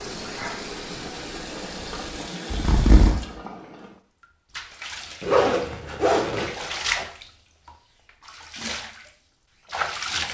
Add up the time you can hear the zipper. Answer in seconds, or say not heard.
2 s.